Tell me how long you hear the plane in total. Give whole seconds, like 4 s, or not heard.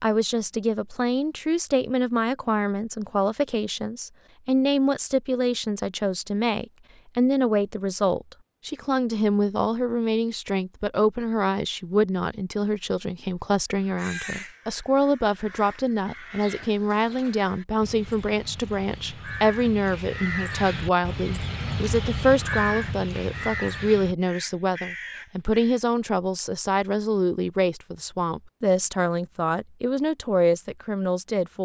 not heard.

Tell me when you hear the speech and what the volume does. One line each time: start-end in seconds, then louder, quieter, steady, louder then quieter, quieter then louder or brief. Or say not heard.
0.0-31.6 steady.